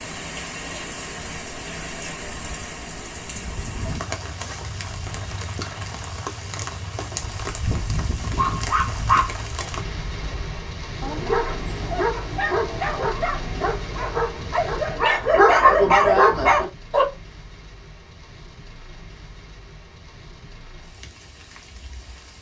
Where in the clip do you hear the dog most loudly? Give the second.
16 s.